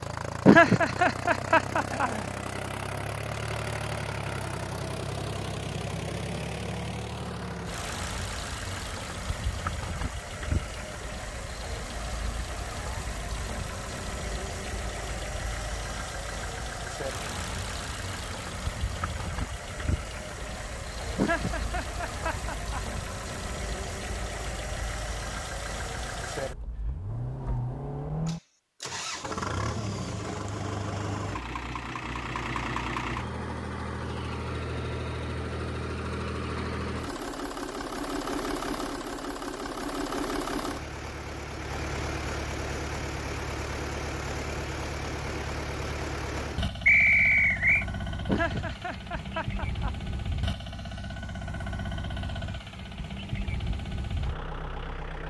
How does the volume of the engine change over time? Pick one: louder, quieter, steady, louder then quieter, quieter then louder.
steady.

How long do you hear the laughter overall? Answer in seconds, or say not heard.
5 s.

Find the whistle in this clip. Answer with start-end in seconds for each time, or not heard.
46.9-47.9.